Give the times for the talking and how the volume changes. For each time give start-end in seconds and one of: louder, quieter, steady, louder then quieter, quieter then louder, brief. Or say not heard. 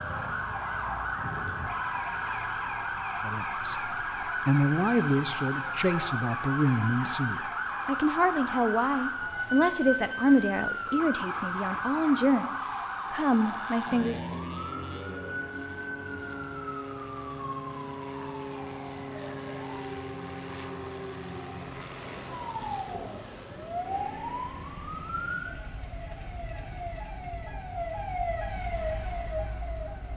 3.2-14.2 steady.